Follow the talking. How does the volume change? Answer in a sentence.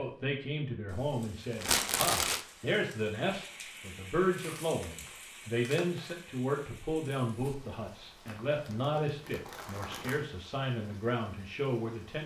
The volume of the talking stays about the same.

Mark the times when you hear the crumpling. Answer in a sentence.
The crumpling can be heard from 1.6 to 2.4 s, from 4.3 to 6.2 s and from 8.2 to 10.2 s.